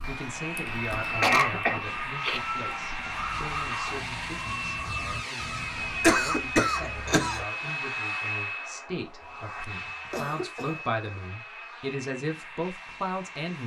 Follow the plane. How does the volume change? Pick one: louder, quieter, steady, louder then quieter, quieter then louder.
quieter.